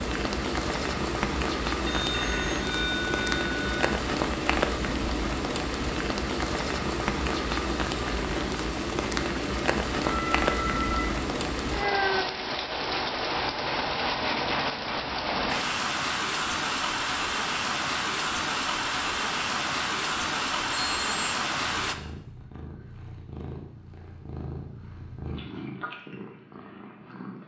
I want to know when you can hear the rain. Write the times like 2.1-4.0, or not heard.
0.0-21.9.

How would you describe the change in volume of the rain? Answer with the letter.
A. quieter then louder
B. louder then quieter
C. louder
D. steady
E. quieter
D.